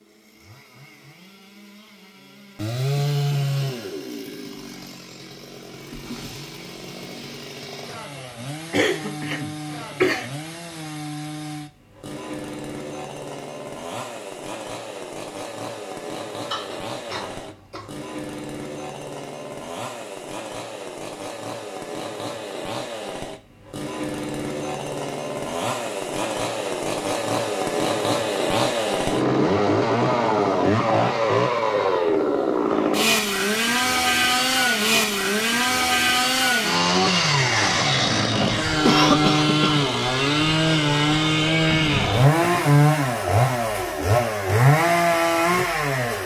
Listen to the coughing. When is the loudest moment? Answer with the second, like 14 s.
39 s.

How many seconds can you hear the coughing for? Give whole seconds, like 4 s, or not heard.
4 s.